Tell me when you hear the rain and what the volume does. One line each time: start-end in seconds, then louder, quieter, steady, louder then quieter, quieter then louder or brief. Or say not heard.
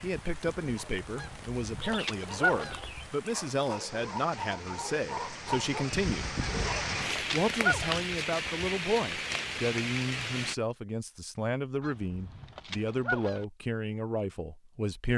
0.0-10.6 louder.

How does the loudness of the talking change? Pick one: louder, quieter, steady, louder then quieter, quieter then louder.
steady.